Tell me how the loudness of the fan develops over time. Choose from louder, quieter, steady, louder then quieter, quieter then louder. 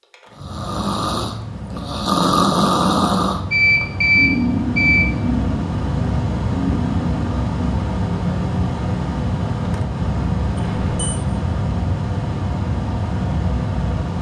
louder.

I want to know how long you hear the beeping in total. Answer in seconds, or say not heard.
2 s.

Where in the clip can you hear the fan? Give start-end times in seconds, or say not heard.
0.0-14.1.